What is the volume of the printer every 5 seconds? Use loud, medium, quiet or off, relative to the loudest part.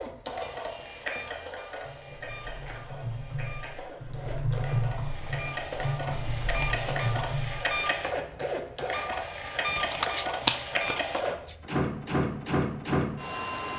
medium, loud, loud.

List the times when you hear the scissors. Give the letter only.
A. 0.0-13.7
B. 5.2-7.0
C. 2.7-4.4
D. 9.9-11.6
D.